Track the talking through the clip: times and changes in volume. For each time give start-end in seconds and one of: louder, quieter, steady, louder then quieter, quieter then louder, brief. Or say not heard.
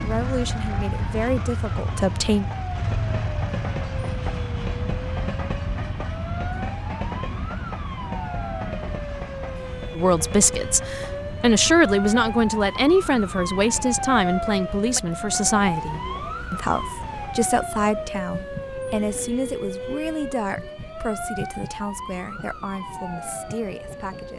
0.0-2.5 brief
9.9-24.3 quieter.